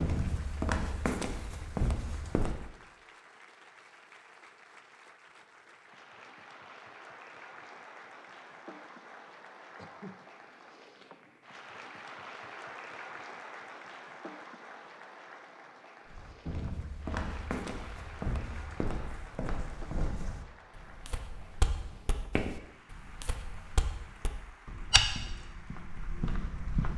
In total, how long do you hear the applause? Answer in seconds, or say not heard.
27 s.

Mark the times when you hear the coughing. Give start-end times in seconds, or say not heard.
9.8-10.2.